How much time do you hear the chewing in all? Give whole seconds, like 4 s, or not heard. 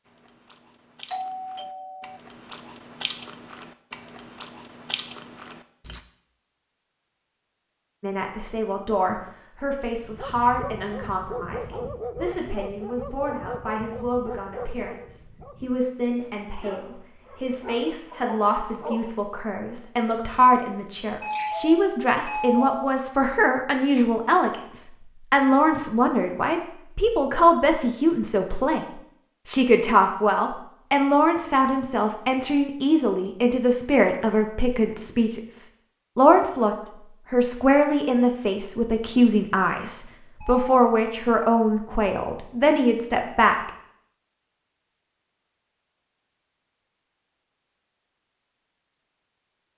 6 s.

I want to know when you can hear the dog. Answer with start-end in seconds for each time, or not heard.
10.0-19.2.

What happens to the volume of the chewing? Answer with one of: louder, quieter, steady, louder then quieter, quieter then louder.
louder.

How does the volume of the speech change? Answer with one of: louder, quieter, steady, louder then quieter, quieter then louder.
louder.